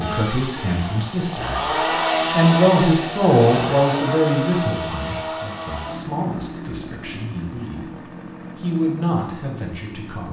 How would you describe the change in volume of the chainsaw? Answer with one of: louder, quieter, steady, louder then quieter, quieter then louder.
quieter.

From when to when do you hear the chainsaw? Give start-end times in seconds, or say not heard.
0.0-10.2.